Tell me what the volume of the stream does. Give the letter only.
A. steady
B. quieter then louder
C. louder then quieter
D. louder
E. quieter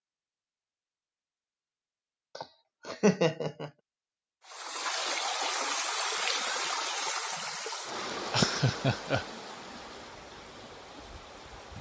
E.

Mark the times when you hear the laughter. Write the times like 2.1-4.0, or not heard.
2.4-3.7, 8.3-9.2.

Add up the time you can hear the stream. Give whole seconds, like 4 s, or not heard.
7 s.